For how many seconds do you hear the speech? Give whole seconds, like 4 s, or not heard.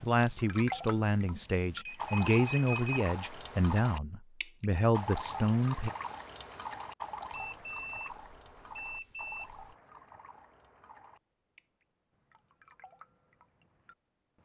6 s.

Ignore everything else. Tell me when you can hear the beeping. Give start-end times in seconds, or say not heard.
1.8-3.1, 7.3-9.8.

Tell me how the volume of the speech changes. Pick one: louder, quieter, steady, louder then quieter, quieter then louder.
steady.